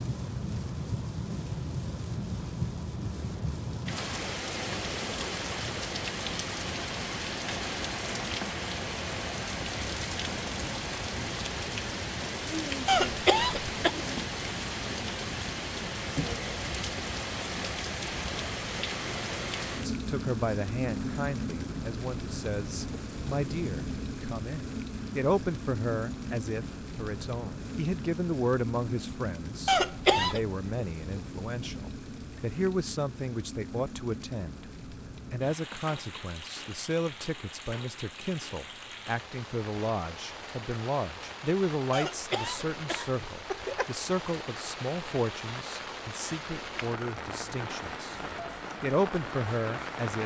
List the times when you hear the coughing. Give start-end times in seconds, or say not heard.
12.8-13.9, 29.6-30.4, 41.9-43.9.